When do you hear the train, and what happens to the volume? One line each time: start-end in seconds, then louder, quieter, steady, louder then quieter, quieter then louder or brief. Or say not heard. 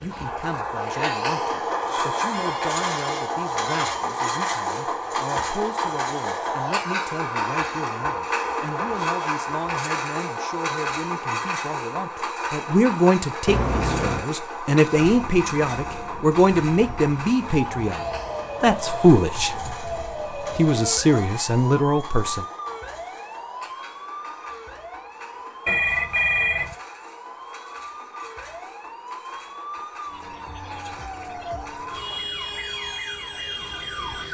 0.0-32.4 quieter.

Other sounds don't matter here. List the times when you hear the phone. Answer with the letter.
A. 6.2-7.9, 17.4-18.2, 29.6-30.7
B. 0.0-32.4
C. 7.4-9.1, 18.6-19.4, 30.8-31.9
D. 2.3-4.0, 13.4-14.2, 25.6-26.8
D.